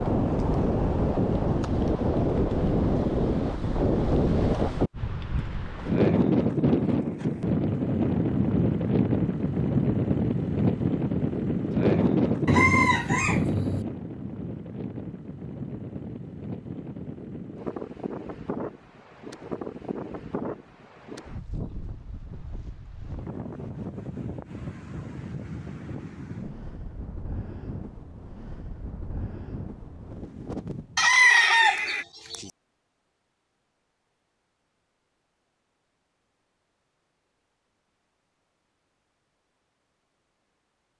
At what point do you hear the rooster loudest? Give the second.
31 s.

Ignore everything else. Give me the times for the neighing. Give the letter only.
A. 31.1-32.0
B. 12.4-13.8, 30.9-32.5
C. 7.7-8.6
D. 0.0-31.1
A.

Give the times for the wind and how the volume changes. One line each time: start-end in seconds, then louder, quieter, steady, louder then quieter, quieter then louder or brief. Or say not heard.
0.0-31.1 quieter.